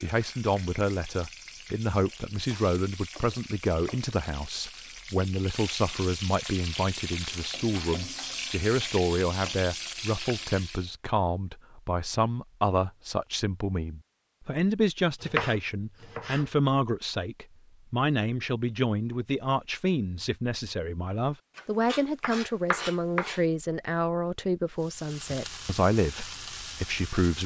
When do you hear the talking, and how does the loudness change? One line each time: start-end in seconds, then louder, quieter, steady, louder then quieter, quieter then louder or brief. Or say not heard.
0.0-27.4 steady.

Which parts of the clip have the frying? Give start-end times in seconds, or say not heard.
0.0-10.9, 24.8-27.4.